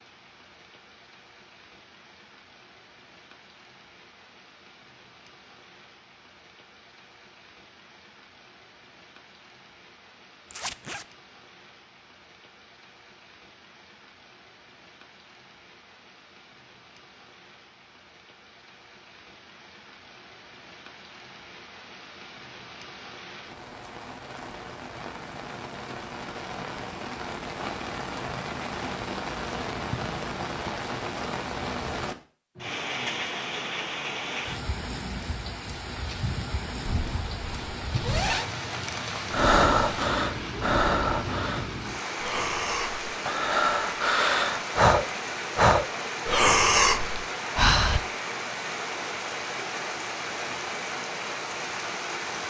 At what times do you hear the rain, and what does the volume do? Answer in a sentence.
You can hear the rain from 0.0 to 52.4 s, getting louder.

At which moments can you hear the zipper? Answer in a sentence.
You can hear the zipper from 10.5 to 11.1 s and from 36.9 to 38.5 s.